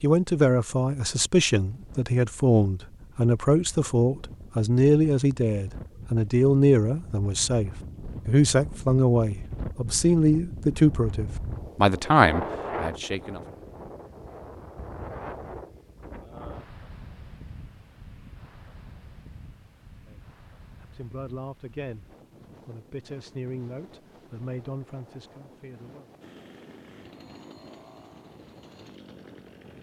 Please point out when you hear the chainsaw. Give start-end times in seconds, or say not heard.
26.2-29.7.